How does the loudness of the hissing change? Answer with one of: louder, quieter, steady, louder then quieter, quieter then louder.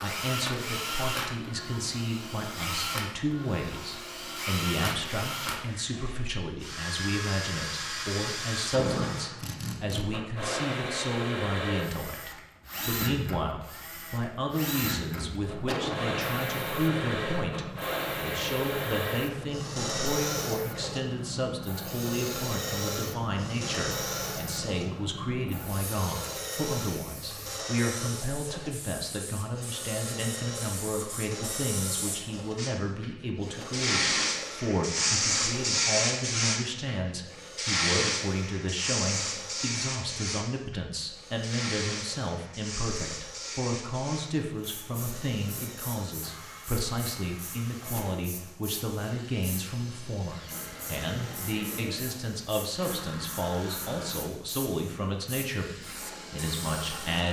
louder then quieter.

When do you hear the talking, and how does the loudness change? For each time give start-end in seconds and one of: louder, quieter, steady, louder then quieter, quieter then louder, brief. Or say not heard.
0.0-57.2 steady.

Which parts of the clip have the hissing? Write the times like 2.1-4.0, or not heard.
15.4-57.2.